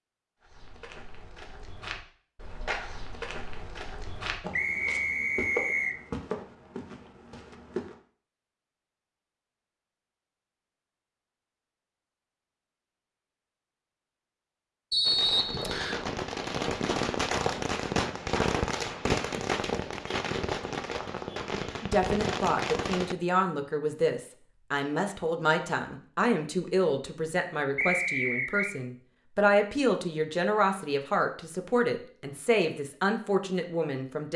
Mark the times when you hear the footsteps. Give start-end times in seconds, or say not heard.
0.4-8.0.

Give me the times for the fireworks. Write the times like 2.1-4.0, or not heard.
15.0-23.1.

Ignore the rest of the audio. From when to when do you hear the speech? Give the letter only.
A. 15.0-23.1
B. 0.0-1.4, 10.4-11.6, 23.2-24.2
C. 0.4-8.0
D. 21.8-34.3
D.